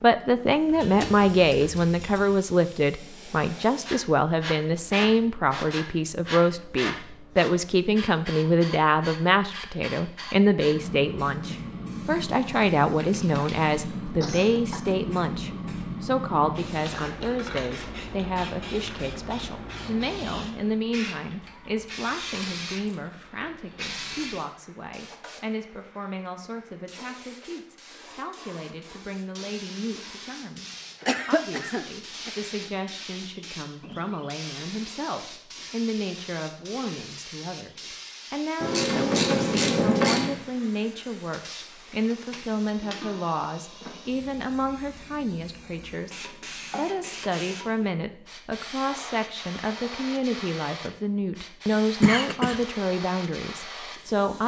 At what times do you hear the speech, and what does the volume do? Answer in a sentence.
The speech can be heard from 0.0 to 54.4 s, getting quieter then louder.